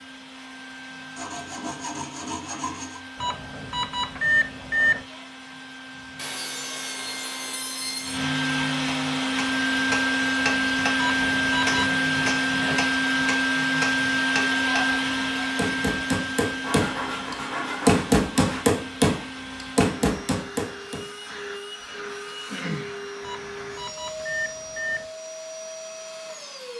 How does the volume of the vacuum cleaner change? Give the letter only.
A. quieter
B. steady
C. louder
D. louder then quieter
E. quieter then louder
D.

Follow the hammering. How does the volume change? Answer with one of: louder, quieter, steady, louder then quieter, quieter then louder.
louder.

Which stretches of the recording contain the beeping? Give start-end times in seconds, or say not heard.
3.2-5.0, 10.9-12.0, 23.2-25.1.